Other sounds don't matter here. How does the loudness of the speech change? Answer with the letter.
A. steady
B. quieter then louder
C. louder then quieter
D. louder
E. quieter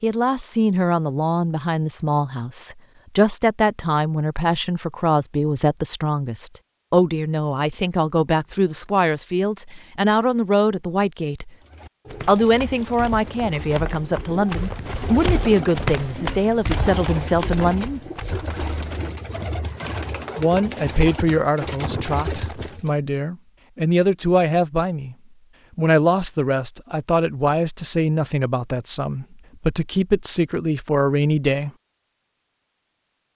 A.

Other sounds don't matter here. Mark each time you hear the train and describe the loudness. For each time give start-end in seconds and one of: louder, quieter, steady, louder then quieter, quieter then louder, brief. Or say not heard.
not heard.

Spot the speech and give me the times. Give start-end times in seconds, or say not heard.
0.0-11.5, 12.2-18.0, 20.4-25.1, 25.8-31.7.